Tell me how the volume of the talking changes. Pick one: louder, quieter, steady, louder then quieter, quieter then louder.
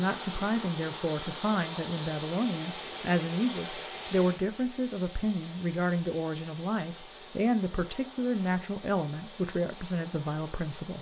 steady.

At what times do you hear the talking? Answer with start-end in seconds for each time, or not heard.
0.0-10.9.